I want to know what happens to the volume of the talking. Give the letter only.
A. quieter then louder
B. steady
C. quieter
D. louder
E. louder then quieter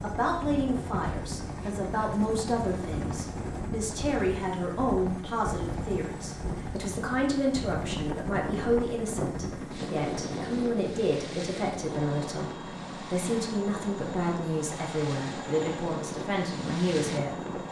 B.